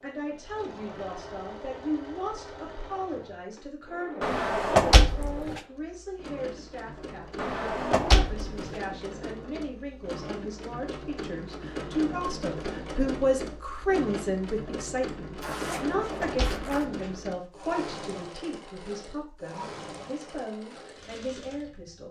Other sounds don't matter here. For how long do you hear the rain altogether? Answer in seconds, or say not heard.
not heard.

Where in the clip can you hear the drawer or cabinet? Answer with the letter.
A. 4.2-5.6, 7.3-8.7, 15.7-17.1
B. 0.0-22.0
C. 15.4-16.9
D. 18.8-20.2
A.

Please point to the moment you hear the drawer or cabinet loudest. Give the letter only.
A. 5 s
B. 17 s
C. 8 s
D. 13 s
A.